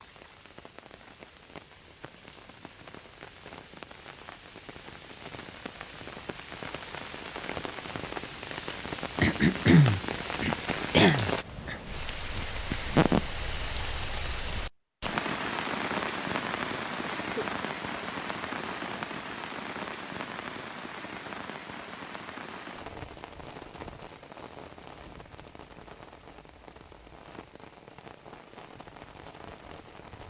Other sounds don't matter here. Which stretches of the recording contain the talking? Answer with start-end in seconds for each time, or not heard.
not heard.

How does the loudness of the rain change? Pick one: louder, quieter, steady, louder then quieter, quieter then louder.
louder then quieter.